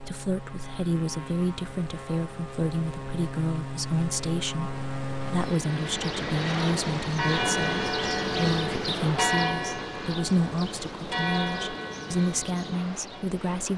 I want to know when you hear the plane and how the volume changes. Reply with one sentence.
You can hear the plane from 0.0 to 13.7 s, getting louder then quieter.